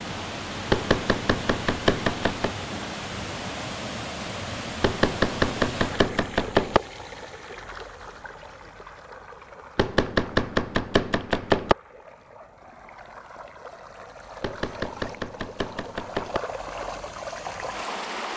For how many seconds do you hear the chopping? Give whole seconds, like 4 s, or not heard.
8 s.